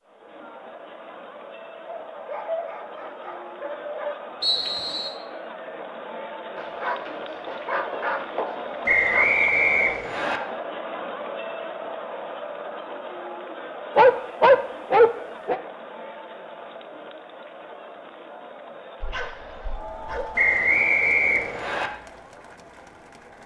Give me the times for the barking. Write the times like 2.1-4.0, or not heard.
1.9-4.2, 6.5-9.4, 13.9-15.6, 19.0-20.4.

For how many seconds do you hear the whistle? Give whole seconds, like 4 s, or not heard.
4 s.